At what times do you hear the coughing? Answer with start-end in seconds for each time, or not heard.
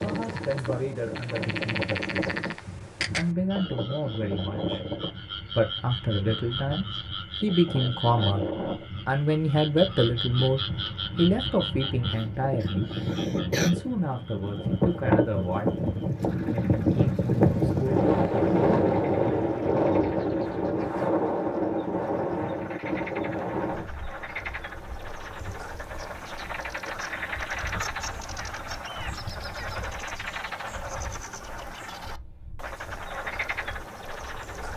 12.1-13.7.